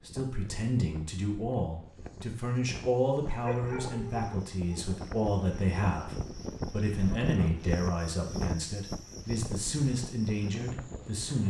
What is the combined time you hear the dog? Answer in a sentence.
The dog can be heard for 2 seconds in total.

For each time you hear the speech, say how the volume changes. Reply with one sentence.
You can hear the speech from 0.1 to 11.4 s, at a steady volume.